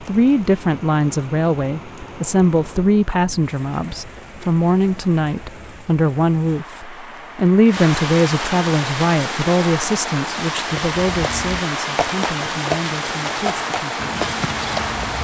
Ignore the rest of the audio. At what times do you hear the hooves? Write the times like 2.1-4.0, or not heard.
10.7-15.1.